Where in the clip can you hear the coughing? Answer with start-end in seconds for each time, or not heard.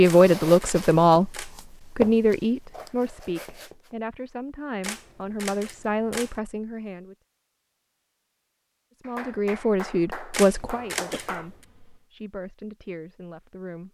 11.1-12.1.